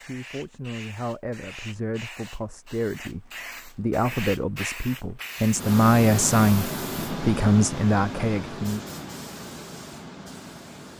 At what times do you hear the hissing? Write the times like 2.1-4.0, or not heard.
0.0-10.9.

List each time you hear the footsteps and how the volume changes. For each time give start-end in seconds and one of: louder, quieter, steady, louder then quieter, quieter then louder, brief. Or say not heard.
not heard.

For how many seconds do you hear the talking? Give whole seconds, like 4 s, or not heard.
9 s.